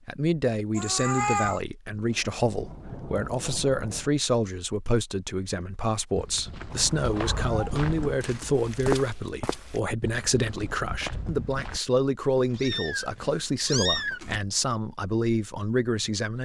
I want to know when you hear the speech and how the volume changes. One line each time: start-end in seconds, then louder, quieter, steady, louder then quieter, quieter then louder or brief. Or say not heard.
0.1-16.4 steady.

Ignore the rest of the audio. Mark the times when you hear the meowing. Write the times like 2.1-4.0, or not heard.
0.8-1.6, 6.7-8.7, 12.3-14.4.